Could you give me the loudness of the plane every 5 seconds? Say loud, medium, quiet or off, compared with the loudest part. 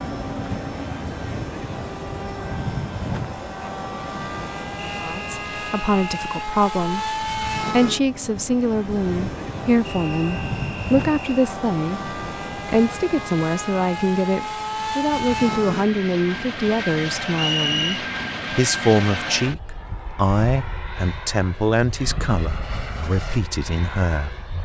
loud, loud, loud, loud, medium.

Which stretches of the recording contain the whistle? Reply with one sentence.
You can hear the whistle from 4.8 to 6.3 s, from 9.8 to 11.5 s and from 17.3 to 18.0 s.